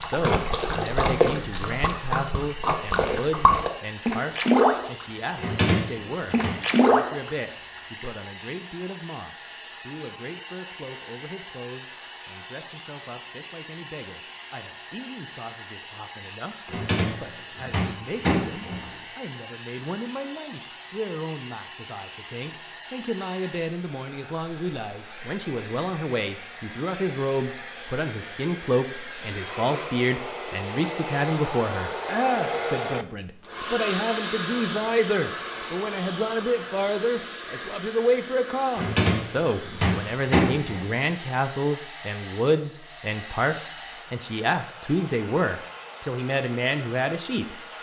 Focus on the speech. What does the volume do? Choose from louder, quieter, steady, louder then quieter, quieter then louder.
quieter then louder.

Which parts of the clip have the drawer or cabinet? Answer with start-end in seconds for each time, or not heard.
5.3-6.5, 16.6-18.9, 38.8-40.9.